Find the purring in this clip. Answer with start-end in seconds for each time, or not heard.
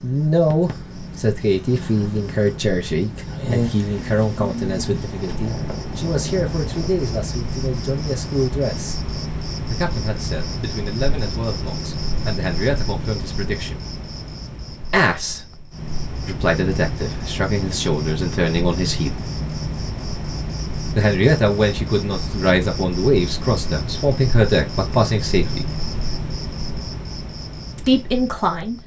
0.0-7.0.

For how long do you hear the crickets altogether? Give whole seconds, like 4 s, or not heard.
29 s.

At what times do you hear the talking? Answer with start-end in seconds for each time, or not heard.
0.0-8.9, 9.7-13.8, 14.8-19.1, 20.9-25.7, 27.8-28.8.